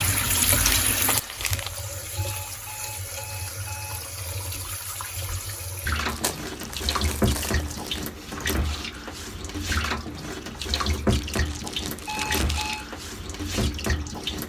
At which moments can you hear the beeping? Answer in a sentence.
The beeping can be heard from 2.1 to 4.0 s and from 12.1 to 12.8 s.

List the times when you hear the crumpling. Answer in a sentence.
The crumpling can be heard from 0.5 to 1.8 s, from 6.0 to 8.1 s and from 11.1 to 12.8 s.